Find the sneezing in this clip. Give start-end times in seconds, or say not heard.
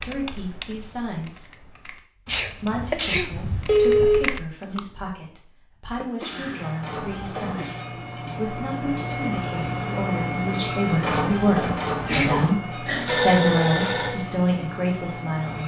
2.2-3.3, 6.0-7.8, 12.1-12.6.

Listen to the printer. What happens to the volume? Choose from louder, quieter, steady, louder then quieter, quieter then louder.
louder then quieter.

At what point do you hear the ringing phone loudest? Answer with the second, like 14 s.
4 s.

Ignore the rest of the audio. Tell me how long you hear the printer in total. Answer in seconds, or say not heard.
9 s.